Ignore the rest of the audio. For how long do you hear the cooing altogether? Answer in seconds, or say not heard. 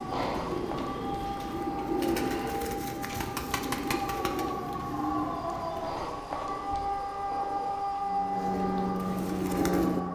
8 s.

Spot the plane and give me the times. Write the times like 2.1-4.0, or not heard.
8.0-10.1.